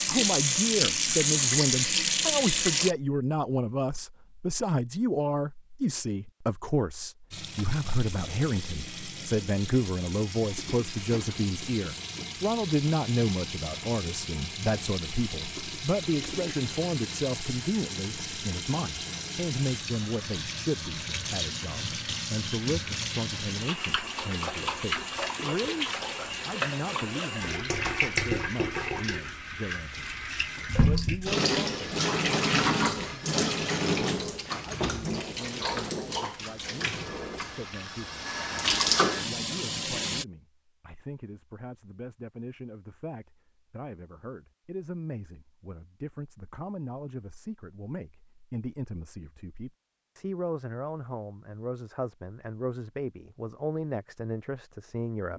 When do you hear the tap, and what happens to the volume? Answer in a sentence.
The tap can be heard briefly from 0.0 to 3.0 s; and from 7.3 to 40.2 s, getting louder.